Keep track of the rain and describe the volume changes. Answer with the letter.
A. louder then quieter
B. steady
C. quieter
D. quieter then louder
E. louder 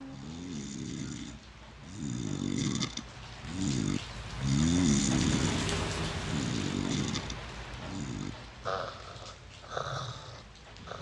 A.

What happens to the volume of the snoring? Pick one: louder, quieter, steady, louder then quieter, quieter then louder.
louder then quieter.